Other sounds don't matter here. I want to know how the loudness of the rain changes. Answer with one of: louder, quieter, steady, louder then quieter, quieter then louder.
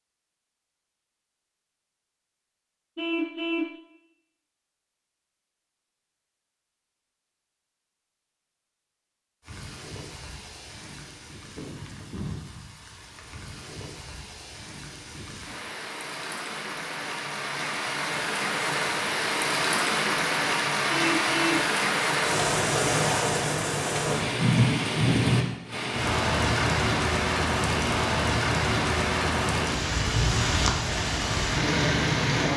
louder.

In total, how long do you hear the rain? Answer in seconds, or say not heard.
23 s.